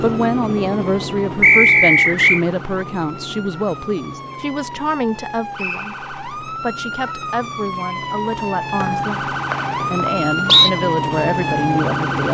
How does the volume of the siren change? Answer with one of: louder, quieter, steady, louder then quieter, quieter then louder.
louder.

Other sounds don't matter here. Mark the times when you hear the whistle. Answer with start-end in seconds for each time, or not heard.
1.4-2.4, 5.5-6.0, 8.8-10.7.